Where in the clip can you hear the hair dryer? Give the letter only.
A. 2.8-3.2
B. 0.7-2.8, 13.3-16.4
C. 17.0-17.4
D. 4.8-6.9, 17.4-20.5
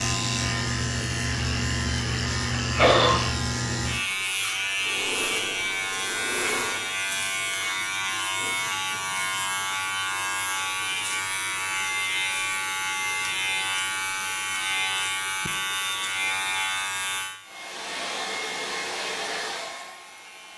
D.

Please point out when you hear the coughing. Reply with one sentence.
The coughing can be heard from 2.8 to 3.2 s.